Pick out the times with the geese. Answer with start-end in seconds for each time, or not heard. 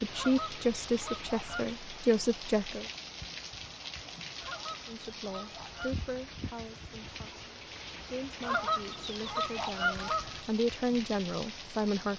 0.1-1.7, 4.4-6.0, 8.4-10.4.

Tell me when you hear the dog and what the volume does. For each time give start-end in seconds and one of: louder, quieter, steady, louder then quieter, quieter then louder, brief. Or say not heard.
not heard.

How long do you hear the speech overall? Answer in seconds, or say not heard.
10 s.